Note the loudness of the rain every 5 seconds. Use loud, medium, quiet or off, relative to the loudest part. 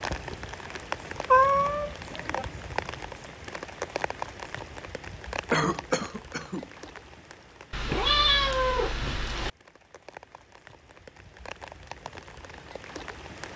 loud, medium, medium.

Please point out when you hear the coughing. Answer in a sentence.
The coughing can be heard from 5.5 to 6.7 s.